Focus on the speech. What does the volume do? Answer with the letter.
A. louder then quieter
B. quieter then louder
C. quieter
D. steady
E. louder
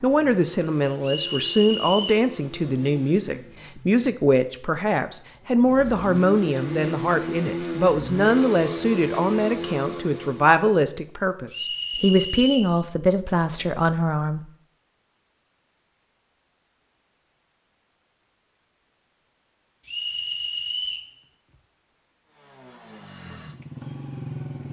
D.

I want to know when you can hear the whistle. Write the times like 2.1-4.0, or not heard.
1.0-2.2, 11.5-12.8, 19.9-21.1.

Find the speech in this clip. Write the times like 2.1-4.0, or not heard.
0.0-14.4.